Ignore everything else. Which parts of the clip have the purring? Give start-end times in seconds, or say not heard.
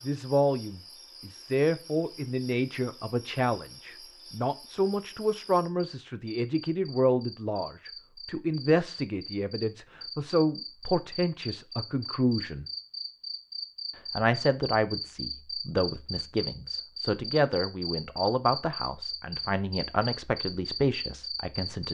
not heard.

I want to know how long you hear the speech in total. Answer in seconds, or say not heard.
20 s.